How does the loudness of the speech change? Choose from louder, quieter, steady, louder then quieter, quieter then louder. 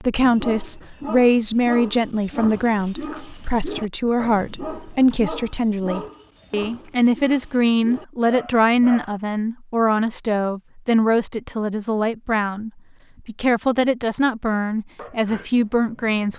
steady.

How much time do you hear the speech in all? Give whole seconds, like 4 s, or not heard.
16 s.